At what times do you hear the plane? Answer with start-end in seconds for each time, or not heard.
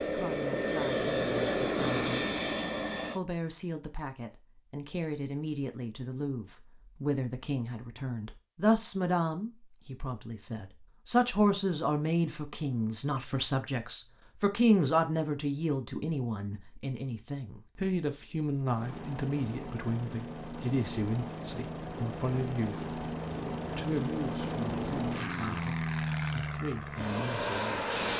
0.0-3.2, 18.8-28.1.